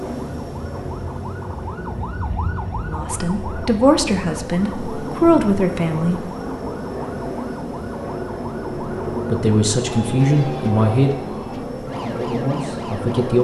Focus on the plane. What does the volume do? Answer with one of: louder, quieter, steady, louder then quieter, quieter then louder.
louder.